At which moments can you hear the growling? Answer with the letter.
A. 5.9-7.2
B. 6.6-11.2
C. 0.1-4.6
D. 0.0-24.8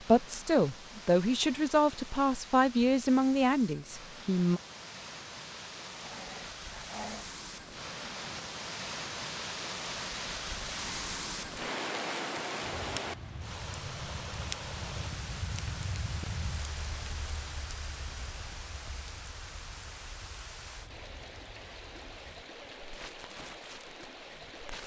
A.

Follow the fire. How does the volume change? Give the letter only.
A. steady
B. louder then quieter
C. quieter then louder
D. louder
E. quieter
C.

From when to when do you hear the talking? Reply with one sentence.
The talking can be heard from 0.1 to 4.6 s.